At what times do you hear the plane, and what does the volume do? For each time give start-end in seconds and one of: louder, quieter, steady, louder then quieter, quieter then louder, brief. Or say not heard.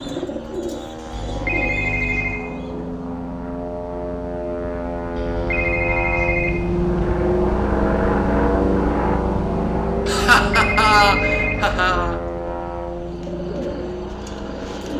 0.0-14.9 louder then quieter.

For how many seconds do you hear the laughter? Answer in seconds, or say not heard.
2 s.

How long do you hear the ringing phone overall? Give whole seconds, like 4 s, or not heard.
5 s.